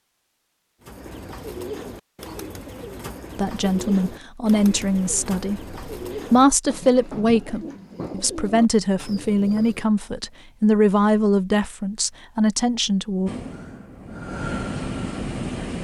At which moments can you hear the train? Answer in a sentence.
You can hear the train from 13.2 to 15.7 s.